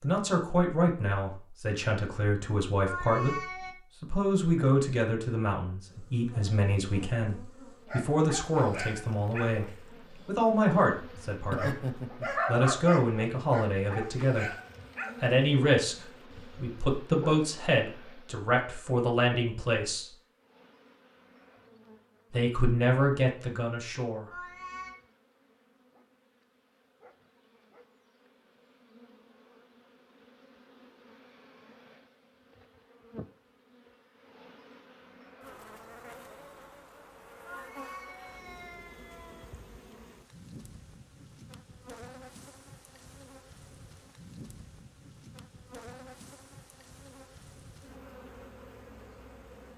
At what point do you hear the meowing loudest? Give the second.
3 s.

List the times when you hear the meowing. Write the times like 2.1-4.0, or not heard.
2.9-3.8, 24.3-24.9, 37.5-39.5.